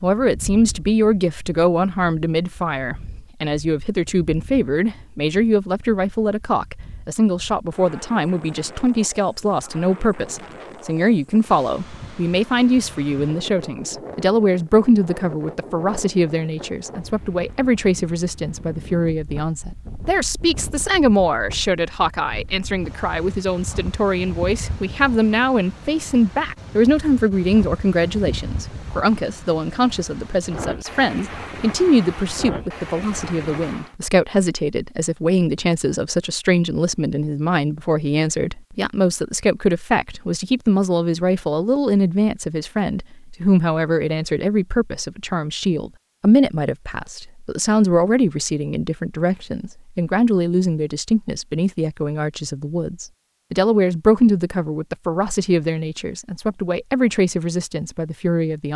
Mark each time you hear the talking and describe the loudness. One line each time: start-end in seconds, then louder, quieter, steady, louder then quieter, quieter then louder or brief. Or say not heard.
0.0-58.7 steady.